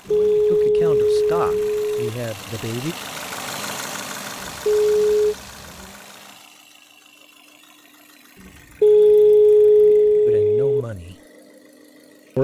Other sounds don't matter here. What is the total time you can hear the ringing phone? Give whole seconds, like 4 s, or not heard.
5 s.